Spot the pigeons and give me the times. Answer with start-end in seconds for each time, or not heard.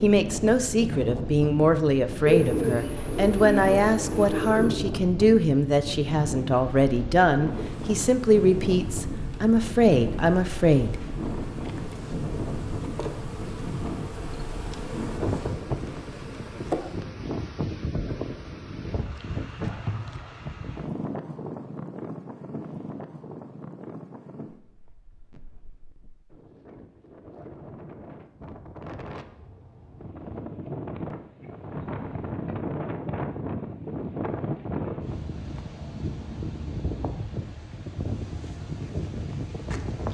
2.2-4.8.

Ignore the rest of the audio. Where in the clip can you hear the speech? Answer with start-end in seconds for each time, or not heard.
0.0-11.1.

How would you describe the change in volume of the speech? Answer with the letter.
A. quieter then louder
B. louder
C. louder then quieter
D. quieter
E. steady
E.